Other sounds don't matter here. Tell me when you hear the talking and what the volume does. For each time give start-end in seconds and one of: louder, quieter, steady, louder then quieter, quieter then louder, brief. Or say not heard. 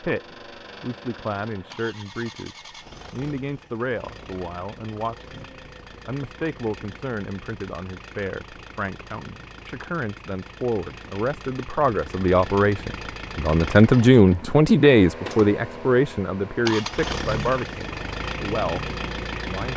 0.0-19.7 louder then quieter.